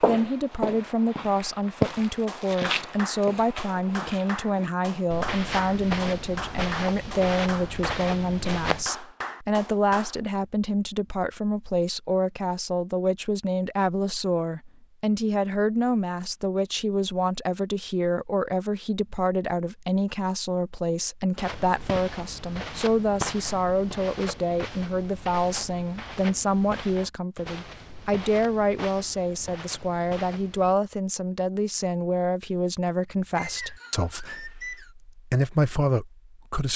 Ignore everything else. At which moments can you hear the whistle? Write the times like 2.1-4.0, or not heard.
33.4-34.9.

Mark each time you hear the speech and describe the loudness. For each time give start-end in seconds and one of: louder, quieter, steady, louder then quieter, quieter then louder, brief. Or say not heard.
0.0-36.7 steady.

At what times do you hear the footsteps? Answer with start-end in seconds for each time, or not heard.
0.0-8.8, 21.4-30.8.